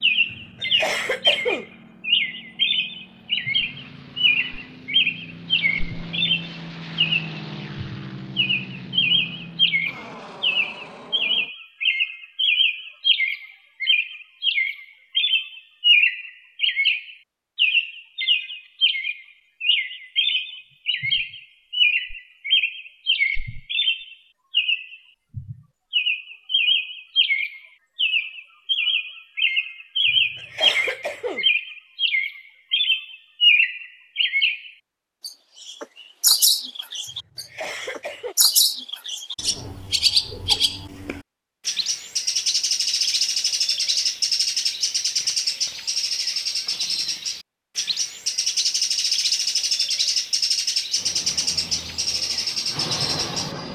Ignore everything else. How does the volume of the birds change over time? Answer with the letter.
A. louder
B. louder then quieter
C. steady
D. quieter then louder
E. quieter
C.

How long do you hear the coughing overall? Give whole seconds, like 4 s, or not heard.
4 s.